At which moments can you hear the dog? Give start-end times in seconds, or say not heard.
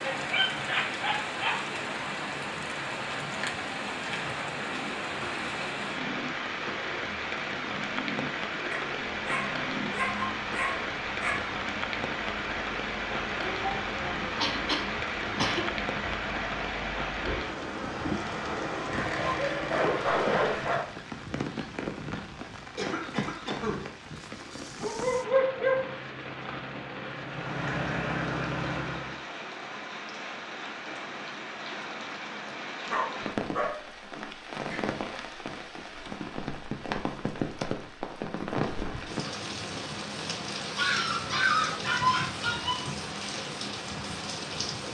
0.0-1.6, 8.7-11.4, 18.9-20.8, 24.8-25.9, 32.9-34.9, 40.8-42.8.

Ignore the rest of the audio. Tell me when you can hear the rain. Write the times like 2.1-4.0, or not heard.
0.0-44.8.